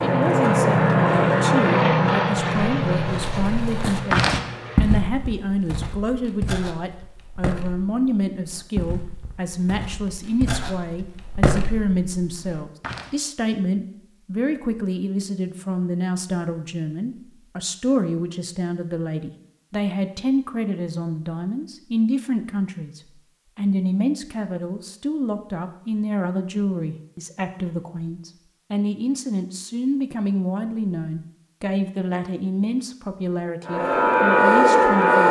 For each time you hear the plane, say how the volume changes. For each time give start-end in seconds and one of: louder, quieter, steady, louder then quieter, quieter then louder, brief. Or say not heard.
0.0-5.0 quieter
33.6-35.2 brief.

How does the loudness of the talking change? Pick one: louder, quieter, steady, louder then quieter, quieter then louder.
steady.